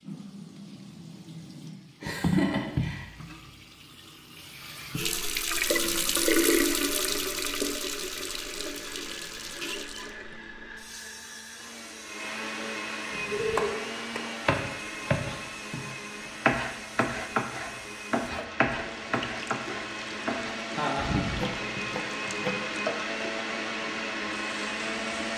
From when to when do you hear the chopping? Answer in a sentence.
You can hear the chopping from 13.1 to 22.6 s.